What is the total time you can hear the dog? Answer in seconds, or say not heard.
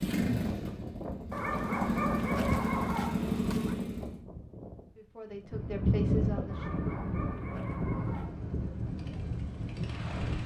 4 s.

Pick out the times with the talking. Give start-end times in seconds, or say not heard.
5.0-6.8.